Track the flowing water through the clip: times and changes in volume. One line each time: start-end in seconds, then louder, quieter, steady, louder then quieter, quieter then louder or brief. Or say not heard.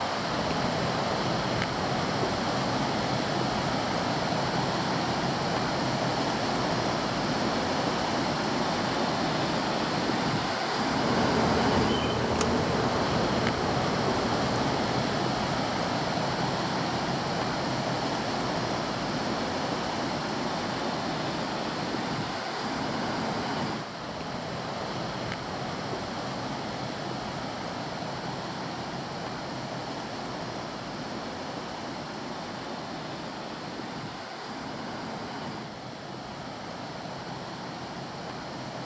0.0-38.8 quieter.